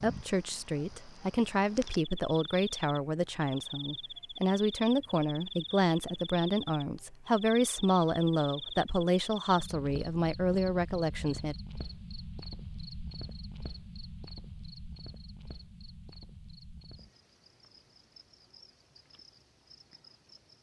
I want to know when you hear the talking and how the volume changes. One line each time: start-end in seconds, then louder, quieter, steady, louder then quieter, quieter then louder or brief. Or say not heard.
0.0-11.6 steady.